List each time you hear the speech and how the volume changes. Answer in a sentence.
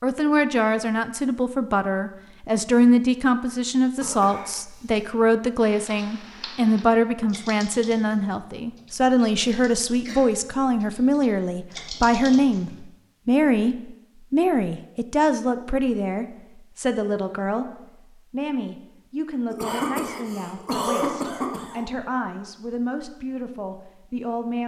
The speech can be heard from 0.0 to 24.6 s, getting quieter.